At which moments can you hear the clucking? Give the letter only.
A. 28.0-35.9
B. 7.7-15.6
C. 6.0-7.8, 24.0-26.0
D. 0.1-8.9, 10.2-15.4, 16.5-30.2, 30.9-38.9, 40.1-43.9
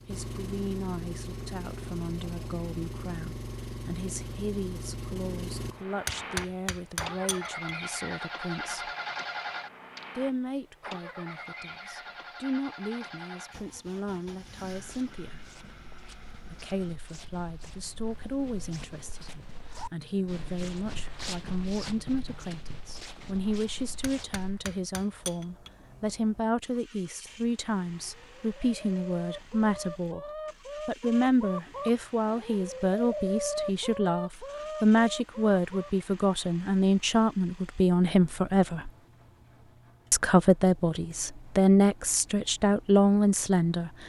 A.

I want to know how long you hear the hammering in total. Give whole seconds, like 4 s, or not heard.
4 s.